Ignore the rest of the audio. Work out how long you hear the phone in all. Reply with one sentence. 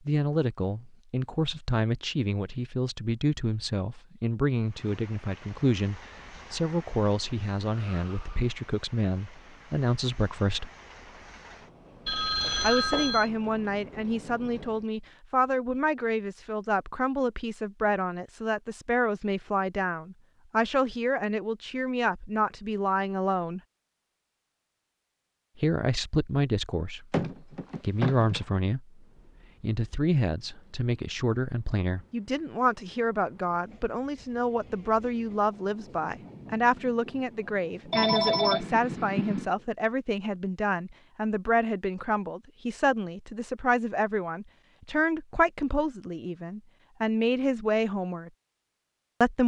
The phone can be heard for 4 seconds in total.